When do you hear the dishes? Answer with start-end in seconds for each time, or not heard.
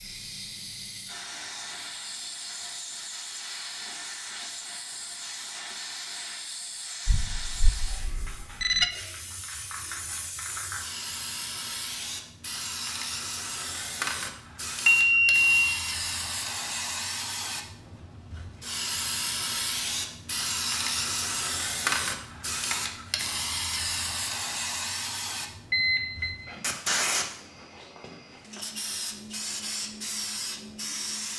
not heard.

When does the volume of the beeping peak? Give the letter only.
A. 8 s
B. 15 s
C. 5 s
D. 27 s
B.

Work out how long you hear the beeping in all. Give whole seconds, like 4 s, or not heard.
3 s.